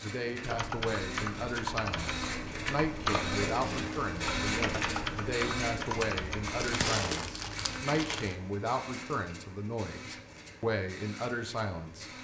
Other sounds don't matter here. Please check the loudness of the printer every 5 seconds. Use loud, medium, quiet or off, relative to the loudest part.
loud, loud, medium.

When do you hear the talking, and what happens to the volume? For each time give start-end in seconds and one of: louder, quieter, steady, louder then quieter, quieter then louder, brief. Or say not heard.
0.0-12.1 steady.